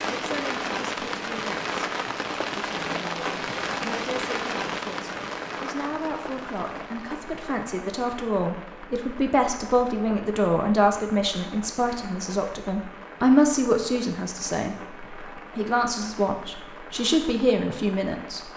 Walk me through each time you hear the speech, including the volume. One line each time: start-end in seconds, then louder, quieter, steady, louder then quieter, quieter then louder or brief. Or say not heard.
0.1-1.6 brief
2.5-18.5 louder.